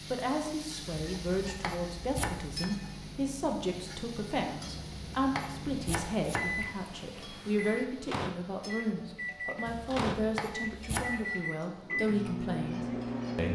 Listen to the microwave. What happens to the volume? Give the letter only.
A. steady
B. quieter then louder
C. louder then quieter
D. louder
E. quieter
D.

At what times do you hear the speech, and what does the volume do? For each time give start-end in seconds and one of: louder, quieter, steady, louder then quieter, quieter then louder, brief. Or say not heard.
0.1-13.5 steady.